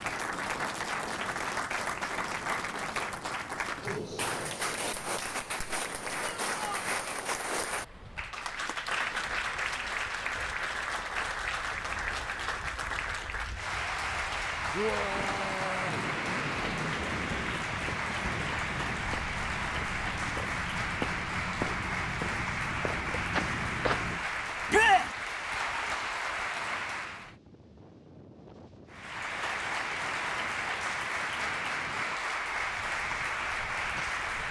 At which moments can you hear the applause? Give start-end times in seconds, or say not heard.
0.0-27.4, 28.9-34.4.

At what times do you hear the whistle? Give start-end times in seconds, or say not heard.
not heard.